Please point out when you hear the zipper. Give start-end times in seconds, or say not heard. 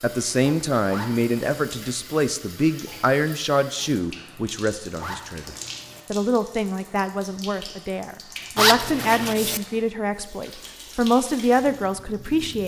0.8-1.9, 5.0-6.0, 8.6-9.6.